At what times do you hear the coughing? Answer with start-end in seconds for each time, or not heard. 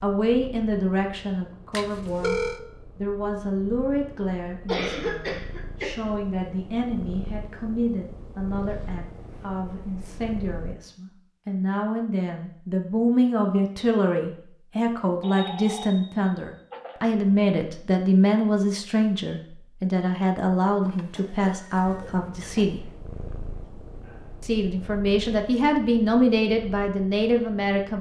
4.7-6.1, 21.1-22.7.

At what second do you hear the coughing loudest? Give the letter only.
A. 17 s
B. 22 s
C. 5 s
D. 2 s
C.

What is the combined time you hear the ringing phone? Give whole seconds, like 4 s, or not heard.
4 s.